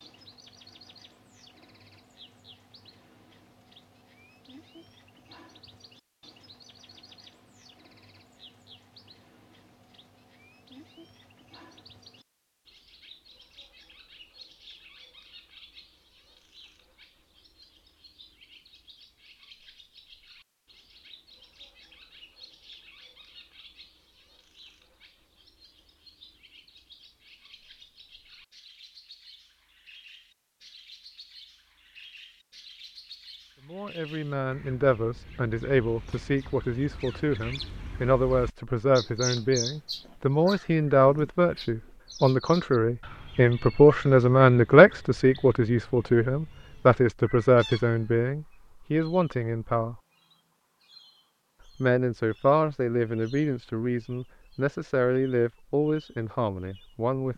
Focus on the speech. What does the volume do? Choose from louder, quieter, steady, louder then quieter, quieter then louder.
louder then quieter.